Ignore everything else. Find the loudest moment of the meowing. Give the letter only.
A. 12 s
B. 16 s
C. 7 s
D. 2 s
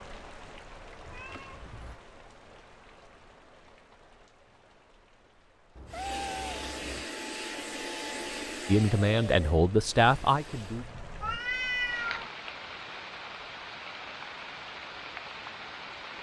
A.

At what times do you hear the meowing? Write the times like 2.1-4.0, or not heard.
1.1-2.0, 5.8-7.0, 11.2-12.2.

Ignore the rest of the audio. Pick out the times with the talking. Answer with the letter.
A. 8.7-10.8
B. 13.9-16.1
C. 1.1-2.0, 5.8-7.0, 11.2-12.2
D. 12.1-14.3
A.